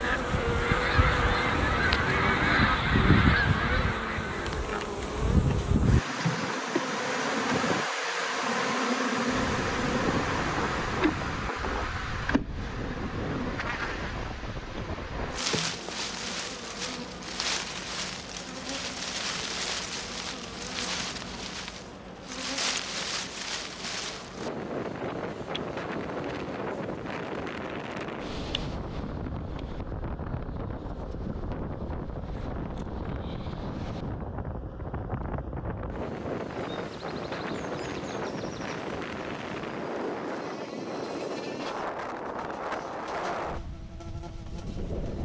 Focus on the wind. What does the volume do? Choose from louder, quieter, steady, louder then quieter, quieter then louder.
steady.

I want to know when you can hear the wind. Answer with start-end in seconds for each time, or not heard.
9.2-45.2.